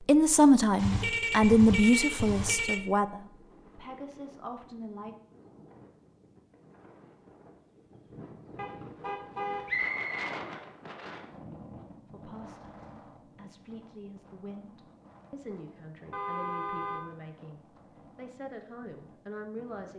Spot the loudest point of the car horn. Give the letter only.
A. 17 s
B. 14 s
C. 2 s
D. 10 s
C.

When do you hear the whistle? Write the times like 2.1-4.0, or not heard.
9.7-10.3.